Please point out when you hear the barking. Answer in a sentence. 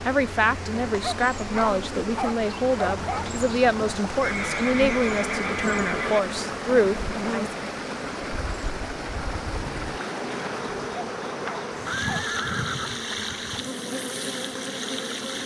You can hear the barking from 1.0 to 3.3 s and from 10.9 to 12.3 s.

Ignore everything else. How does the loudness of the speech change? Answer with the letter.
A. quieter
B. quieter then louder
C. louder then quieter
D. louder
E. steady
E.